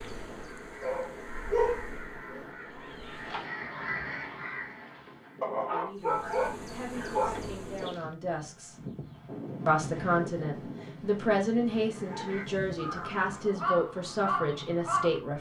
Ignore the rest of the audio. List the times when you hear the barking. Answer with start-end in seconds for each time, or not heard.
0.8-2.5, 5.4-7.4, 11.7-13.4.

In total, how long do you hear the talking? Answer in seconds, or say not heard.
9 s.